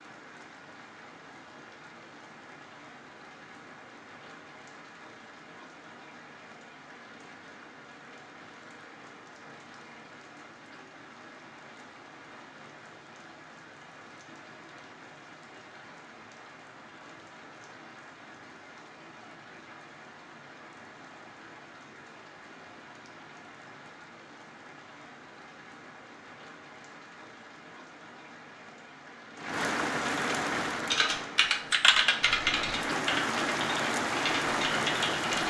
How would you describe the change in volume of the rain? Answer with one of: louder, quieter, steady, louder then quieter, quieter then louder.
louder.